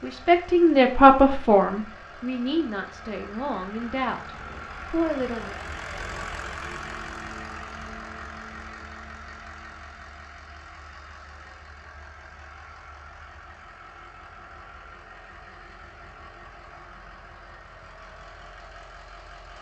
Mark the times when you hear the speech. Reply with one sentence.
You can hear the speech from 0.0 to 5.5 s.